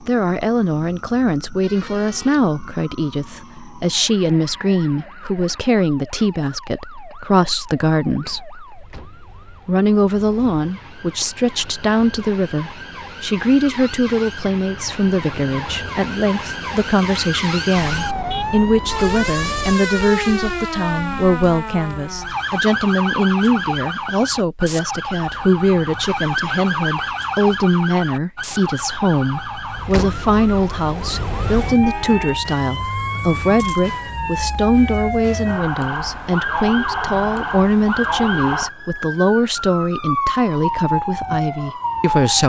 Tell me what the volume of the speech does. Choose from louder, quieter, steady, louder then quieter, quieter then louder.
steady.